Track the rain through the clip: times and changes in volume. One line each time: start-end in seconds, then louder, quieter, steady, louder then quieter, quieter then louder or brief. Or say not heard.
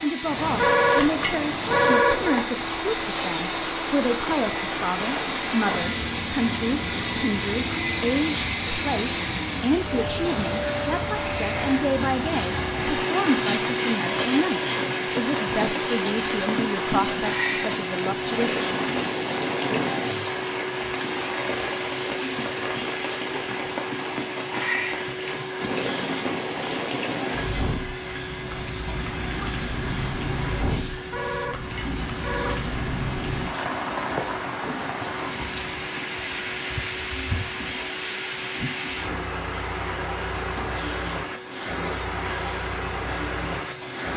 0.1-44.1 steady.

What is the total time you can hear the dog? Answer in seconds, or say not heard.
not heard.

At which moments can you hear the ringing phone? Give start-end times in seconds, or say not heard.
0.5-2.5, 30.9-32.6.